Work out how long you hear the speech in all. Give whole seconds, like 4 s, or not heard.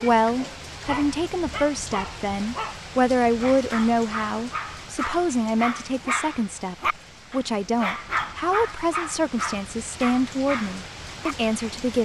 12 s.